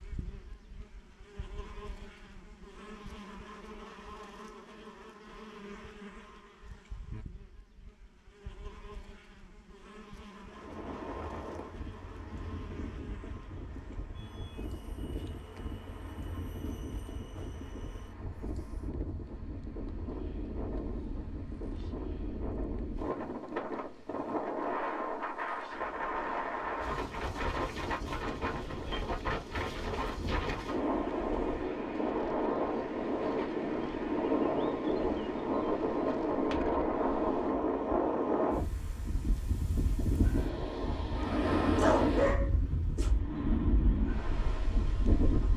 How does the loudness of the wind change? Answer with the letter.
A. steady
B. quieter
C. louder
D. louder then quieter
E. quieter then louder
C.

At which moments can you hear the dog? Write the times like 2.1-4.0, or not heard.
41.8-43.1.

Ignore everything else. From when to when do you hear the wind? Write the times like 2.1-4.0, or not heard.
10.4-45.5.